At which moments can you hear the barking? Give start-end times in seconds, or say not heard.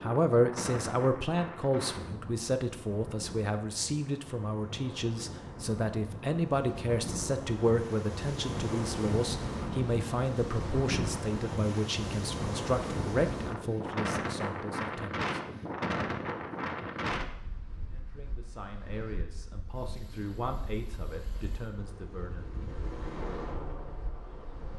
not heard.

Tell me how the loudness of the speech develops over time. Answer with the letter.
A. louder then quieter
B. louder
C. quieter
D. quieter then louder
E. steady
C.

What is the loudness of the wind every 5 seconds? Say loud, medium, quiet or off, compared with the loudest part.
medium, loud, loud, loud, quiet.